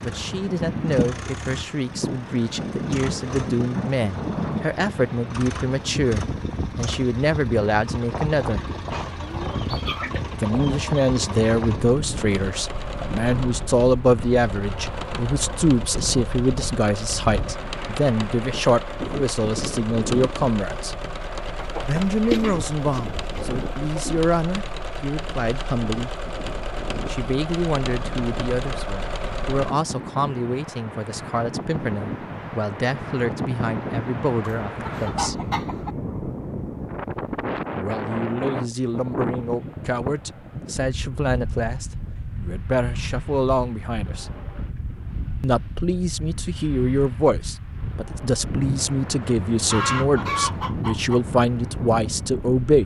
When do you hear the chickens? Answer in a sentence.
The chickens can be heard from 9.1 to 11.0 s, from 21.6 to 24.2 s, from 34.5 to 35.9 s and from 49.6 to 51.2 s.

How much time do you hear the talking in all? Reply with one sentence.
The talking can be heard for 46 seconds in total.